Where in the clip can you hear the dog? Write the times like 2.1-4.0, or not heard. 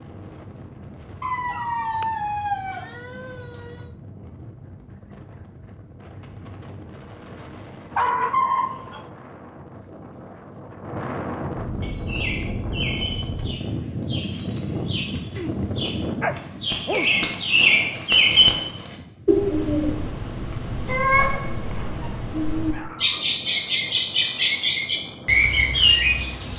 1.2-3.9, 7.9-9.1, 15.3-17.3, 21.7-23.3.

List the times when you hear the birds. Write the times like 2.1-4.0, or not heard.
11.8-26.5.